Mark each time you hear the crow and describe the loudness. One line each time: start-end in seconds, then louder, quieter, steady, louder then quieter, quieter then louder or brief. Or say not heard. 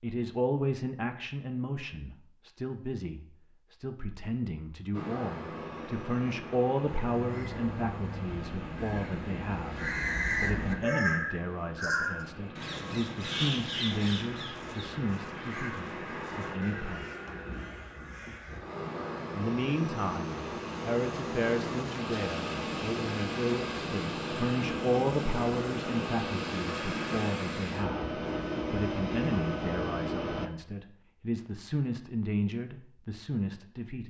6.8-18.6 louder then quieter.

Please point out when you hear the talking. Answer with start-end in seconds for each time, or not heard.
0.0-17.1, 19.4-34.0.